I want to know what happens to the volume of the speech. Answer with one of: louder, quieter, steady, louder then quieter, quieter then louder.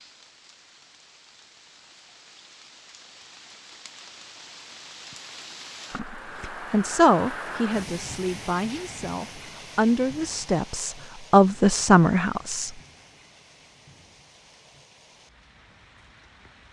quieter then louder.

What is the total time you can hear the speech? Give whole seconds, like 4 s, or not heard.
7 s.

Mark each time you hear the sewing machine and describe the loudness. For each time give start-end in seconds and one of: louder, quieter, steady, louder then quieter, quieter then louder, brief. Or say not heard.
not heard.